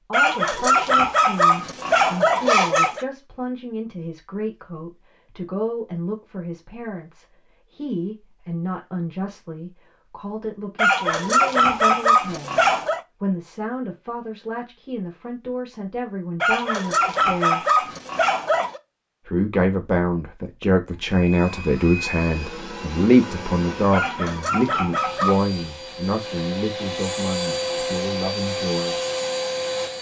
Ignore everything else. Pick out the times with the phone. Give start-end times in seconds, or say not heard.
not heard.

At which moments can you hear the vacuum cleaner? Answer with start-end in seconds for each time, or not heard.
21.0-29.9.